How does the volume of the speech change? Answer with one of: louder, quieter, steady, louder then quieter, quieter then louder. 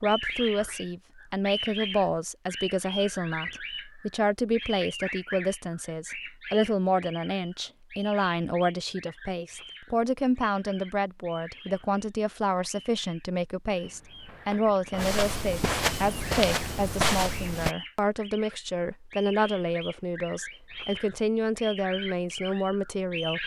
steady.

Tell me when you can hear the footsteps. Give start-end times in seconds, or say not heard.
13.8-17.8.